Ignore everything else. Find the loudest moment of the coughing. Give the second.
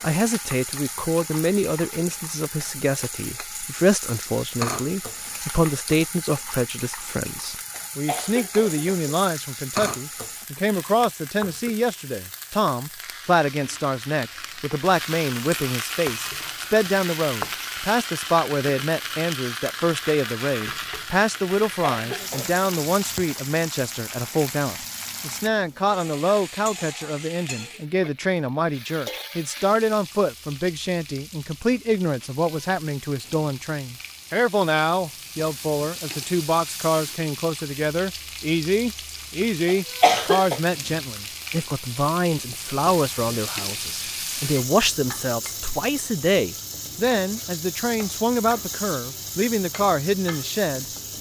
40 s.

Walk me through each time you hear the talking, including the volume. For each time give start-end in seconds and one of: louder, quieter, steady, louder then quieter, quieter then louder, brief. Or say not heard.
0.0-50.9 steady.